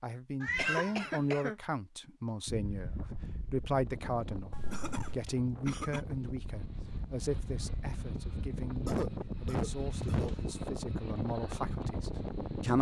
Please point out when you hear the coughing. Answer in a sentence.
The coughing can be heard from 0.6 to 1.6 s, from 4.7 to 6.0 s and from 8.8 to 10.3 s.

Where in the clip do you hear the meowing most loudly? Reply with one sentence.
The loudest moment of the meowing is at 1 second.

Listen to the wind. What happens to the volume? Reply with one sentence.
The volume of the wind goes up.